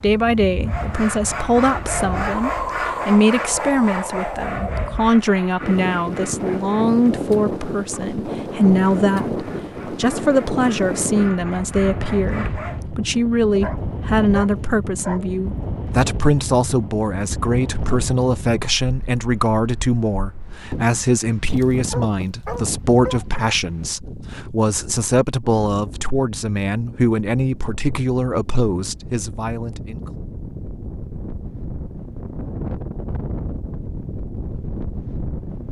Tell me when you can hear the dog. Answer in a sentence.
You can hear the dog from 13.6 to 15.3 s and from 21.4 to 23.4 s.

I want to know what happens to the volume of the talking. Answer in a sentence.
The loudness of the talking stays about the same.